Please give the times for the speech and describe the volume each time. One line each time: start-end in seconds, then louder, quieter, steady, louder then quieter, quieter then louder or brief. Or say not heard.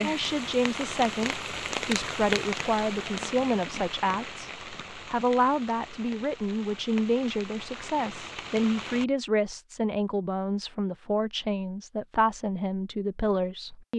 0.0-13.9 steady.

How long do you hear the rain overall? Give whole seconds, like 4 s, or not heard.
9 s.